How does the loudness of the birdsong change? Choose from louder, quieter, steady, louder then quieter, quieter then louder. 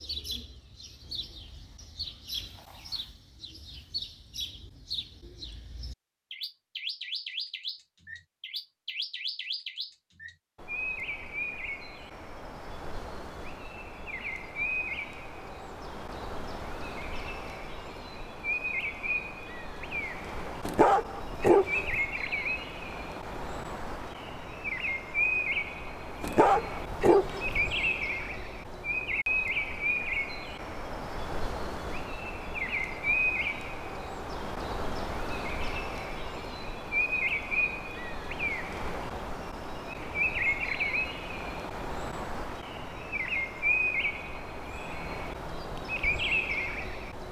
louder.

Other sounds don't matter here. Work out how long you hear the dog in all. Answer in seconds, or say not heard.
3 s.